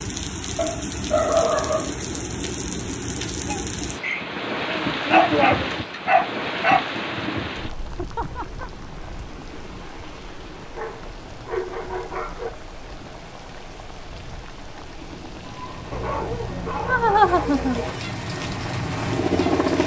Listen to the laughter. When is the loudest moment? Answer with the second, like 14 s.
17 s.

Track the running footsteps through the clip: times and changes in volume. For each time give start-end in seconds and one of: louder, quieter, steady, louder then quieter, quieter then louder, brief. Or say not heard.
not heard.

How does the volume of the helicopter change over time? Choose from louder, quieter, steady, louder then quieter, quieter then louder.
louder.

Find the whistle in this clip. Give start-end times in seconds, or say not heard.
not heard.